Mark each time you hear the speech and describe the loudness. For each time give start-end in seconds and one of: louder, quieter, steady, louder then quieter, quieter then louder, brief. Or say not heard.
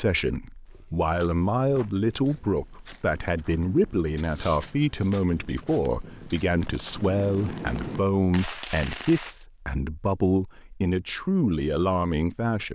0.0-12.6 steady.